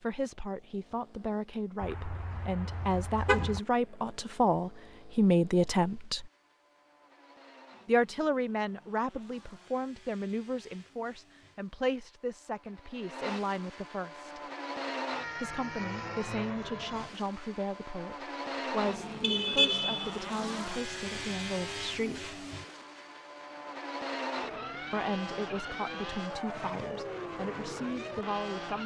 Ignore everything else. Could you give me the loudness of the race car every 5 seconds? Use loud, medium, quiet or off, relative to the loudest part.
quiet, quiet, medium, loud, loud, loud.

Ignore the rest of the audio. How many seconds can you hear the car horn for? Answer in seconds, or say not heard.
3 s.